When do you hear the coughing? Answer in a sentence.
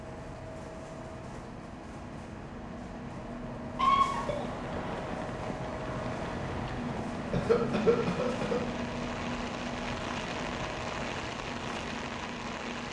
The coughing can be heard from 3.8 to 4.5 s and from 7.3 to 8.6 s.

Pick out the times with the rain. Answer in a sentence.
The rain can be heard from 3.9 to 12.8 s.